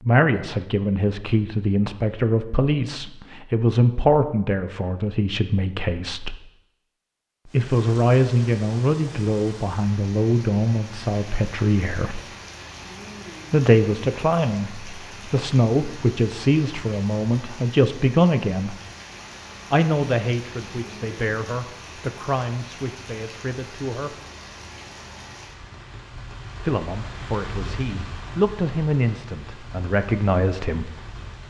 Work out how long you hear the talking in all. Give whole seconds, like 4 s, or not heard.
25 s.